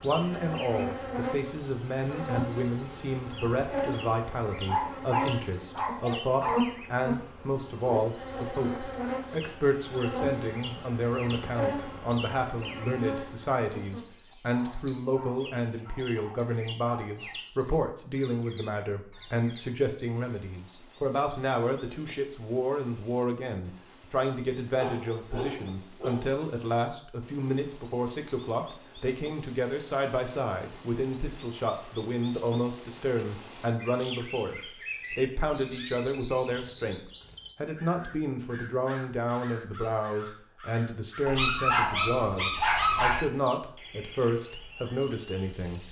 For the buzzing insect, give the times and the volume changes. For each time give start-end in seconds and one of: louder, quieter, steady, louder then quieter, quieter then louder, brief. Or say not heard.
0.0-14.1 steady.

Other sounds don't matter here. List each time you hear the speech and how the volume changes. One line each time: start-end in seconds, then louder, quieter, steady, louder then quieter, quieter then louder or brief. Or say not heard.
0.0-45.8 steady.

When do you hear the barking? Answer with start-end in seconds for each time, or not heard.
4.7-6.7, 14.5-17.4, 24.8-26.4, 41.2-43.2.